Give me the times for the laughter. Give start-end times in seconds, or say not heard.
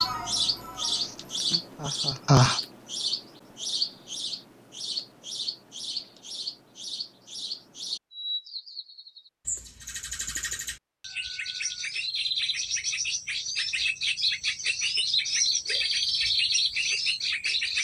0.9-2.6.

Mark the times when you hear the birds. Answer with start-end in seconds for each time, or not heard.
0.0-17.7.